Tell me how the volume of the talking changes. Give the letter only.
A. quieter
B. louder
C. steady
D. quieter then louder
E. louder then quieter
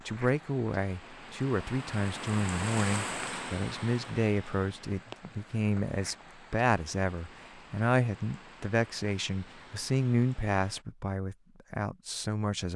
C.